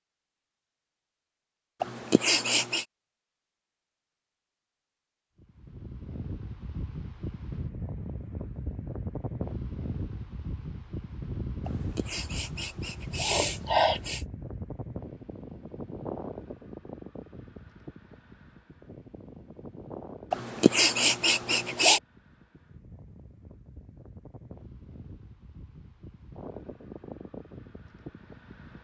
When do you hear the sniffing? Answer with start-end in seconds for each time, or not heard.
1.8-2.9, 11.7-14.2, 20.3-22.0.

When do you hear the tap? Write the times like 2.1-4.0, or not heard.
not heard.